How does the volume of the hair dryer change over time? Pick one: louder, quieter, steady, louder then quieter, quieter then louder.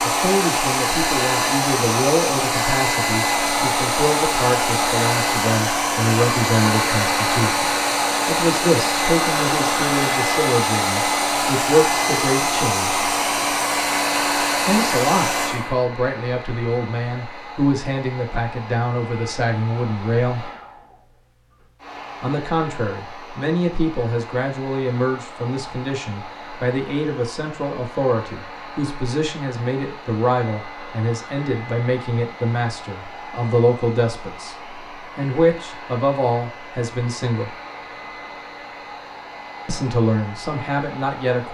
quieter.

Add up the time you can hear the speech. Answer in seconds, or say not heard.
35 s.